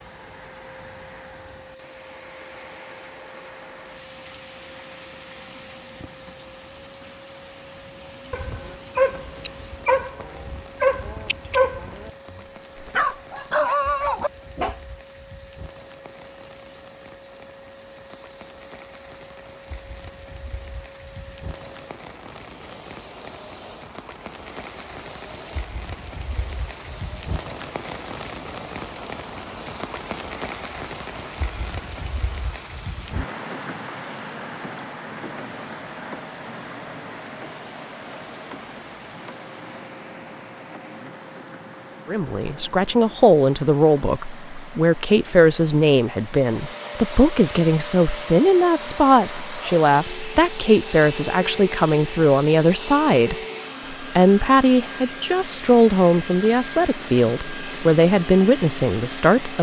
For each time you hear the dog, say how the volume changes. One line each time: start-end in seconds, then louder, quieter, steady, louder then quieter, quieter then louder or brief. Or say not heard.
8.3-14.8 steady.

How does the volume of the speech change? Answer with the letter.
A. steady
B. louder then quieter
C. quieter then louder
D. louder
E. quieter
A.